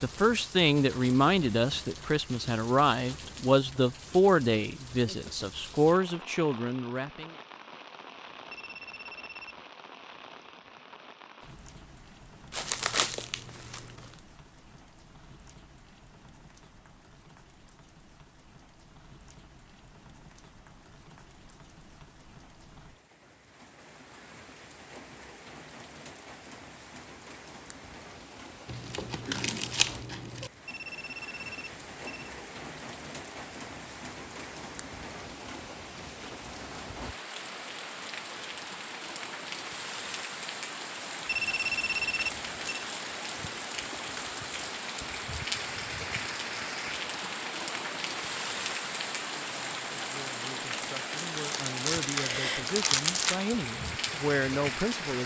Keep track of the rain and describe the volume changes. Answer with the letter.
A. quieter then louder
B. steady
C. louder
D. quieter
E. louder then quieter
A.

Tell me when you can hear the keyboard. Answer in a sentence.
The keyboard can't be heard in this clip.